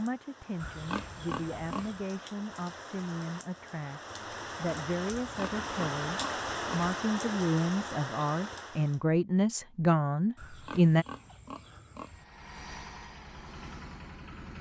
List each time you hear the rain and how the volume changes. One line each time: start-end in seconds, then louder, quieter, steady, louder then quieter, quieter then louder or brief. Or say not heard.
0.0-9.0 louder.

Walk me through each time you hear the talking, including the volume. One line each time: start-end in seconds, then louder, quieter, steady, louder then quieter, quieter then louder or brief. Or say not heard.
0.0-11.1 louder.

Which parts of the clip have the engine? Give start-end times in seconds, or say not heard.
11.9-14.5.